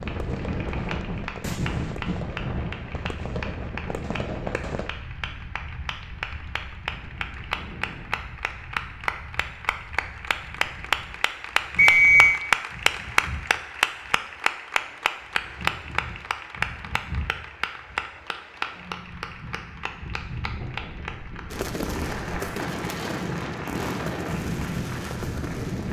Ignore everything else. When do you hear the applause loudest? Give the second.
13 s.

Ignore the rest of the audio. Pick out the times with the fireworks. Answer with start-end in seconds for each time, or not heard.
0.0-4.9, 21.5-25.8.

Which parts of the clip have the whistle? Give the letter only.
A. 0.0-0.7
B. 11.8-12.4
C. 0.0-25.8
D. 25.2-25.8
B.